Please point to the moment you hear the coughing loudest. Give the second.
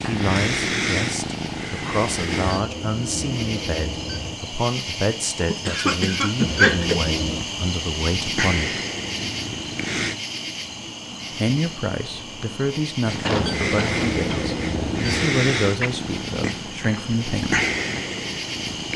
7 s.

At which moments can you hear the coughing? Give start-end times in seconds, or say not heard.
5.4-7.0, 13.2-14.6.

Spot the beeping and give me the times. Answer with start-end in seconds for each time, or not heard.
2.5-4.3, 6.4-7.5, 13.3-15.3.